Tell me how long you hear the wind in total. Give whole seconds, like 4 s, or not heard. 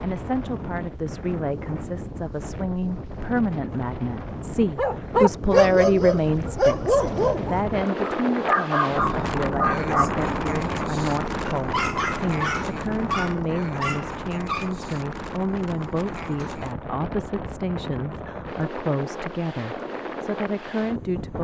21 s.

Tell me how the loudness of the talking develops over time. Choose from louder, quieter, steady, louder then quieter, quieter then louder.
louder then quieter.